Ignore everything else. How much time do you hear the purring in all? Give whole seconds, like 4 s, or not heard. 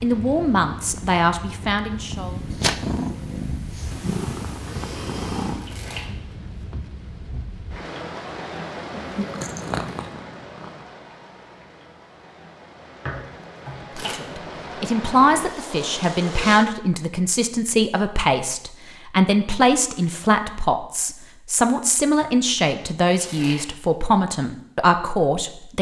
6 s.